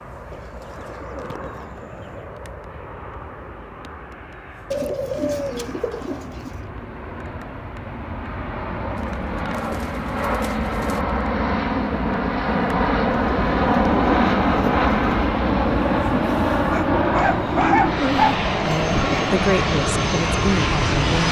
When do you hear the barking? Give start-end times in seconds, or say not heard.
16.6-18.4.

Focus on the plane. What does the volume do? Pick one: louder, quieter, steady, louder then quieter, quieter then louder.
louder.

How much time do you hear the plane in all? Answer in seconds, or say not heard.
21 s.